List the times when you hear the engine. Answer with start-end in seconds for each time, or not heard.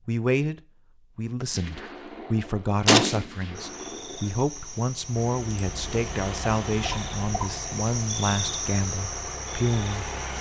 5.2-10.3.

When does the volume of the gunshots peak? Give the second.
3 s.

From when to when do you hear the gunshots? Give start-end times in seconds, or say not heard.
1.6-4.2.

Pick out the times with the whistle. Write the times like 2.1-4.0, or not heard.
not heard.